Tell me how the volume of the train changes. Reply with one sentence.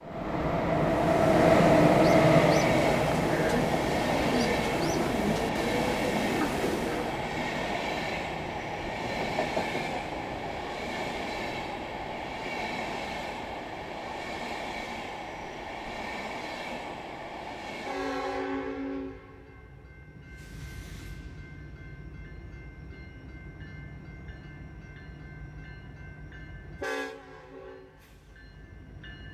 The volume of the train goes down.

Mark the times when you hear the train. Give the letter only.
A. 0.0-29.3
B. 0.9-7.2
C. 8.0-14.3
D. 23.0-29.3
A.